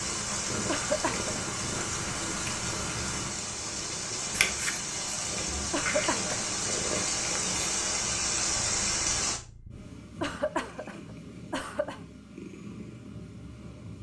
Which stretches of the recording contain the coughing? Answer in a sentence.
You can hear the coughing from 0.7 to 1.5 s, from 5.7 to 6.7 s and from 10.2 to 12.0 s.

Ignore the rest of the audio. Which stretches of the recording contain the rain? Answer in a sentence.
The rain can be heard from 0.0 to 9.4 s.